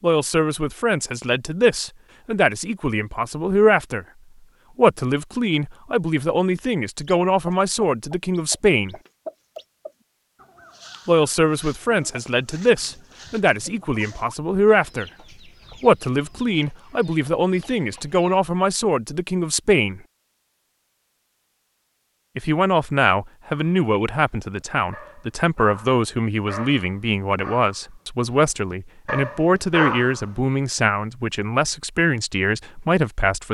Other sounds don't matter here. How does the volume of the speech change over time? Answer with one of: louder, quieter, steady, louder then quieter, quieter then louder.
steady.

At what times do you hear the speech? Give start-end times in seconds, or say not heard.
0.0-4.0, 4.8-8.9, 11.1-15.1, 15.8-20.0, 22.4-33.4.